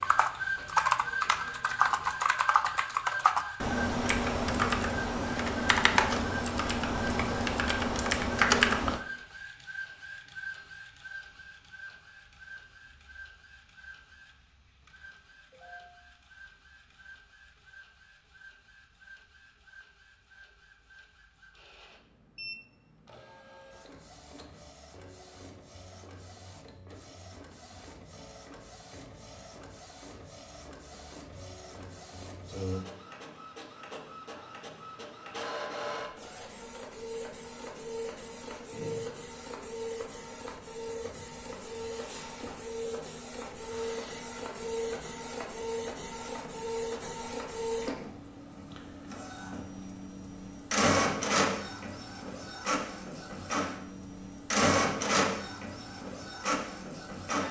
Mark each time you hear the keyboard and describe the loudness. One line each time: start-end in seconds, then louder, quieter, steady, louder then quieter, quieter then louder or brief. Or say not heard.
0.0-9.0 steady.